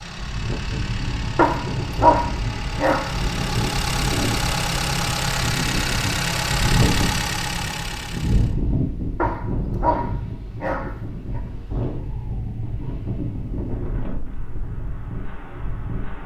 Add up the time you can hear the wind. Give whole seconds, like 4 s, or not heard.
16 s.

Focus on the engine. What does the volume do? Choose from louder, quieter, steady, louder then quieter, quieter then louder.
louder.